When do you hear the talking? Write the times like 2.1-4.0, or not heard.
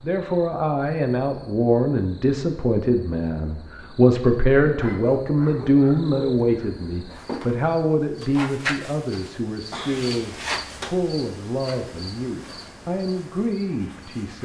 0.0-14.4.